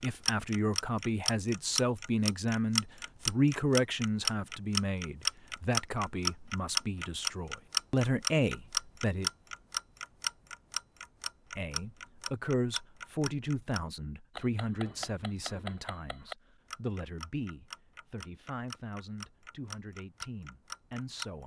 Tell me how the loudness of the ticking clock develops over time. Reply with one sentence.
The volume of the ticking clock goes down.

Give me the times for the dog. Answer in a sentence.
You can't hear the dog here.